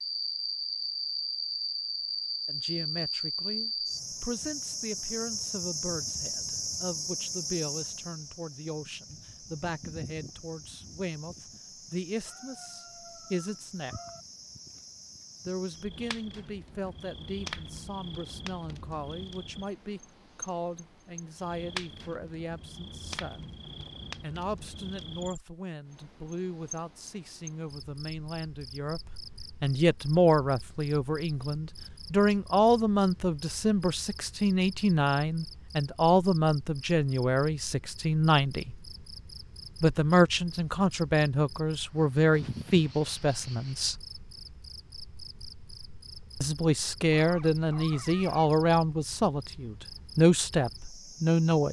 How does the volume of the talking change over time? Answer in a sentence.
The volume of the talking goes up.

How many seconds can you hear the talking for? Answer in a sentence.
You can hear the talking for 44 seconds altogether.